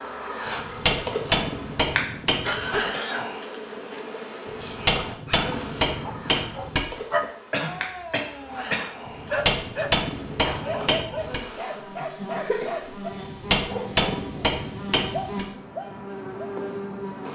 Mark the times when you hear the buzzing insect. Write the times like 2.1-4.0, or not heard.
0.0-17.3.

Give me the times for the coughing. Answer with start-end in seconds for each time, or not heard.
2.5-4.0, 7.5-8.9, 12.3-13.2.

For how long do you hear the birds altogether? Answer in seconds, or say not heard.
not heard.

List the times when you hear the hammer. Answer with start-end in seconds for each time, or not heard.
0.5-2.8, 4.5-6.8, 9.1-11.4, 13.1-15.4.